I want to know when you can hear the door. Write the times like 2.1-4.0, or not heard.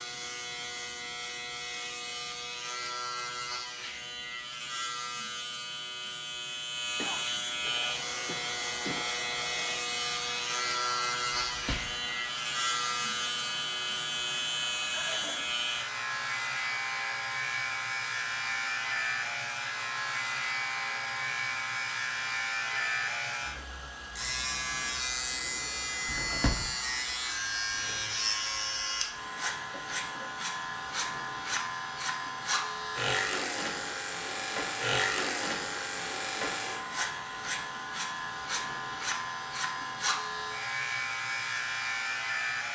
11.3-12.0, 26.1-26.8.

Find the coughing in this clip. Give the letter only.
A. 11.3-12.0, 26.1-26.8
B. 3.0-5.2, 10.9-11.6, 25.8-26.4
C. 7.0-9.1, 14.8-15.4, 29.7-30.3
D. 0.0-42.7
C.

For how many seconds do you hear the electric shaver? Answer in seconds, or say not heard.
43 s.